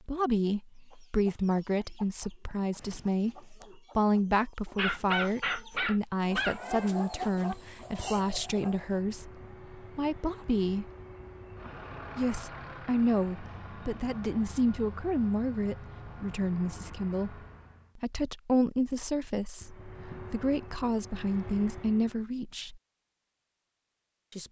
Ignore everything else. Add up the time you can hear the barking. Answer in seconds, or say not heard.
2 s.